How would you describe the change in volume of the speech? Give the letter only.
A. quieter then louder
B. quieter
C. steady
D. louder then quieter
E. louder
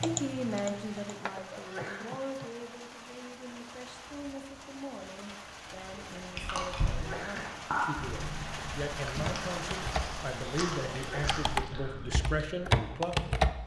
A.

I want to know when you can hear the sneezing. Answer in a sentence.
The sneezing can be heard from 1.5 to 2.1 s, from 6.8 to 7.5 s and from 10.9 to 11.5 s.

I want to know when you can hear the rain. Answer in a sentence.
The rain can be heard from 0.0 to 11.7 s.